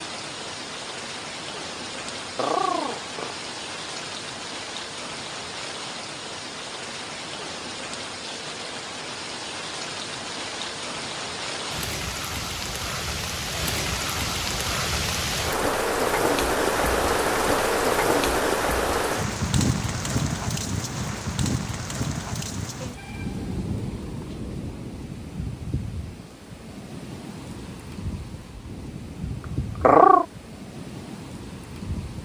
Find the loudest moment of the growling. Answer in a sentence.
The loudest moment of the growling is at 30 seconds.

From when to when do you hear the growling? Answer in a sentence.
The growling can be heard from 2.4 to 3.4 s and from 29.8 to 30.2 s.